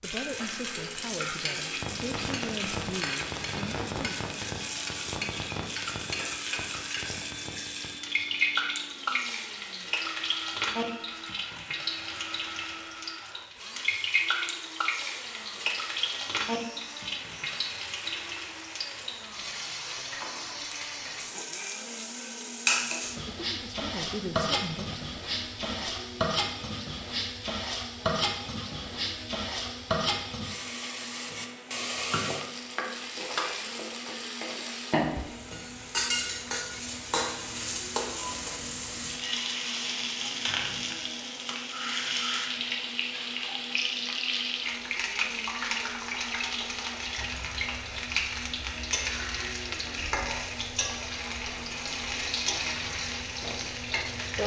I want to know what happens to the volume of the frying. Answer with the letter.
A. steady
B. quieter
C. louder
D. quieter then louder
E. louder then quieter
A.